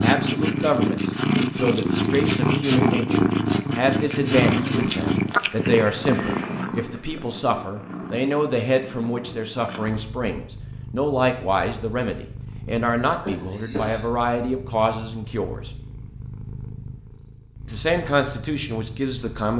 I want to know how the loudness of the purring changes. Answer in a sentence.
The loudness of the purring goes down.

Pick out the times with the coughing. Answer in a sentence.
You can hear the coughing from 13.2 to 14.1 s.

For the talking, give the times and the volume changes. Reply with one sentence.
The talking can be heard from 0.0 to 15.7 s, at a steady volume; and briefly from 17.6 to 19.5 s.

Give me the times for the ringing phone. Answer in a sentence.
You can't hear the ringing phone here.